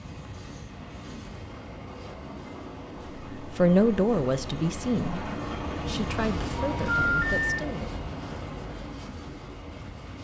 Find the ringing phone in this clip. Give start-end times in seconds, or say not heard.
6.5-7.5.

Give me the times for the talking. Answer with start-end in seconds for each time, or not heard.
3.4-7.8.